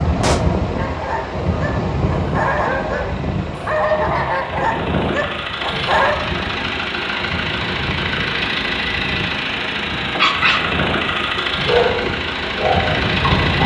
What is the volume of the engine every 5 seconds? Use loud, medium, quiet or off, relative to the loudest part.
quiet, loud, loud.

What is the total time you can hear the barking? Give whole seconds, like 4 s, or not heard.
9 s.